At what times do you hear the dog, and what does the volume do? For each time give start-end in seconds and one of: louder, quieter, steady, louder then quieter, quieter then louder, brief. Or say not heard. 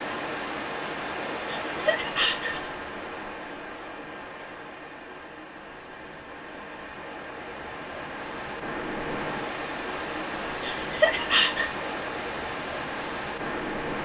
not heard.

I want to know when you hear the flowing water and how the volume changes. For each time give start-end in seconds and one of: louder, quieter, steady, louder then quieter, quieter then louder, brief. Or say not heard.
0.0-14.0 quieter then louder.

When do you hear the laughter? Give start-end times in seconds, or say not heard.
1.6-2.7, 10.6-11.7.